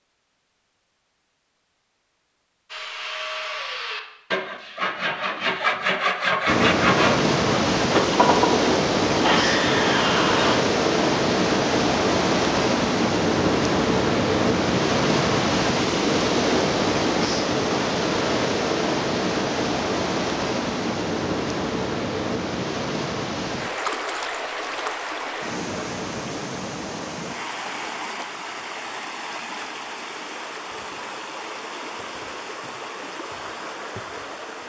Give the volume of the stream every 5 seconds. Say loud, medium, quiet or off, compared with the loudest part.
off, loud, loud, loud, medium, medium, quiet.